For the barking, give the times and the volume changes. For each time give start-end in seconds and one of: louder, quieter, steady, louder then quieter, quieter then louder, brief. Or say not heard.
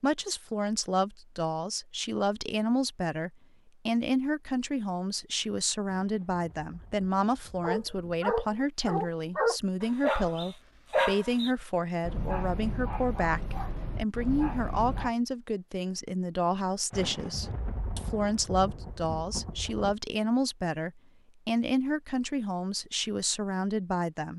7.6-15.1 quieter.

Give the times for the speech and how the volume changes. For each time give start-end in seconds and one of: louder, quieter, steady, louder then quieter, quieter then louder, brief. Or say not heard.
0.0-24.3 steady.